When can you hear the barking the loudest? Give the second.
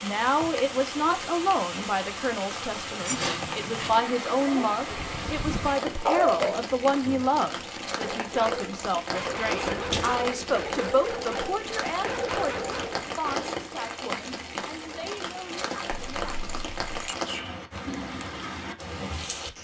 6 s.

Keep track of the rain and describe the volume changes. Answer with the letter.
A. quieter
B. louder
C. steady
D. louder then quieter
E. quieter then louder
C.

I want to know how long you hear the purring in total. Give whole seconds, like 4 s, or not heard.
not heard.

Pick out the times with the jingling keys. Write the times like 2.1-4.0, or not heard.
3.0-3.9, 9.7-10.2, 15.9-17.1.